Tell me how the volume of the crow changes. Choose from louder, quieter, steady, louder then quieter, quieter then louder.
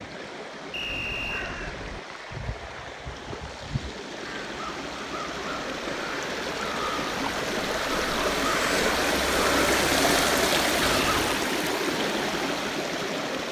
louder.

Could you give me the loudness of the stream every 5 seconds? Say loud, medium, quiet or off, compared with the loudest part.
quiet, loud, loud.